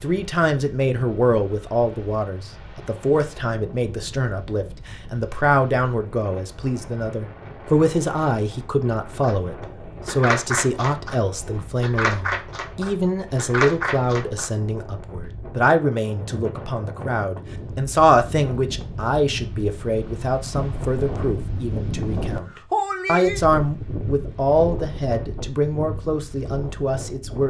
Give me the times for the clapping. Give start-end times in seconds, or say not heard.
9.2-14.8.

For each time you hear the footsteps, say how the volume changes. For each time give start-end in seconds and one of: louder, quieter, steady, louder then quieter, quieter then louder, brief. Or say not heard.
not heard.